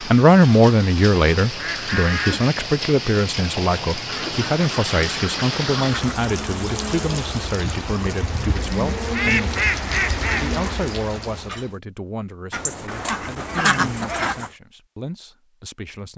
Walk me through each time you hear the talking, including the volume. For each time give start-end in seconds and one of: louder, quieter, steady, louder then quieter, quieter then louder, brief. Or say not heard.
0.0-16.1 quieter.